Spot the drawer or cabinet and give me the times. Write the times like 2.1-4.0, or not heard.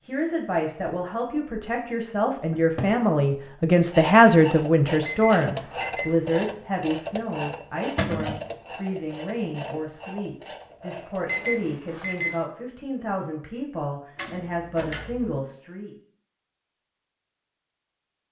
2.5-3.0, 8.0-8.4, 14.2-15.4.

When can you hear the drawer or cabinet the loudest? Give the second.
8 s.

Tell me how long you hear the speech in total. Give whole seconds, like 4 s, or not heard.
16 s.